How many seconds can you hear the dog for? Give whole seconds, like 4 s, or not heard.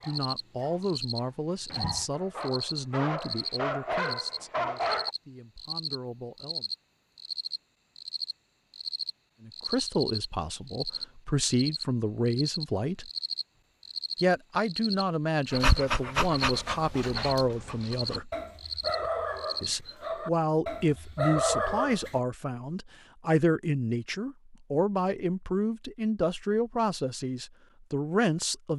12 s.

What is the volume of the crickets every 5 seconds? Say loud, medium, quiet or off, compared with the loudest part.
loud, loud, loud, loud, off, off.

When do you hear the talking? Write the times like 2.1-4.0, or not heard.
0.1-6.7, 9.4-13.1, 14.2-18.3, 19.6-28.7.